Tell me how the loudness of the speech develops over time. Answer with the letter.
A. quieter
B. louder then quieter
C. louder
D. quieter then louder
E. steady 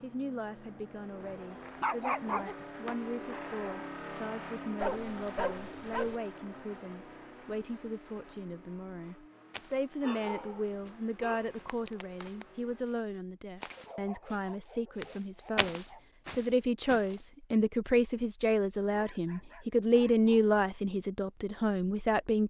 C.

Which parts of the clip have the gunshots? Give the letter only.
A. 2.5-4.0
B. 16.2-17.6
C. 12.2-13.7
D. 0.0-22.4
A.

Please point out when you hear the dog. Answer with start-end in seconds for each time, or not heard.
1.6-2.5, 4.8-6.2, 10.0-11.6, 13.8-16.1, 18.9-20.6.